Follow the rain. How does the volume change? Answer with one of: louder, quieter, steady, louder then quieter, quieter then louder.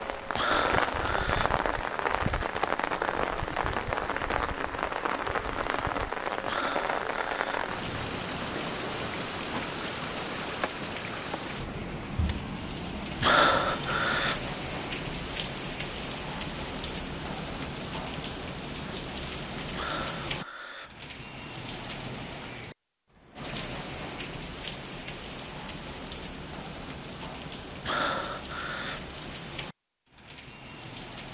quieter.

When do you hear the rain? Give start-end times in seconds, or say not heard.
0.0-31.3.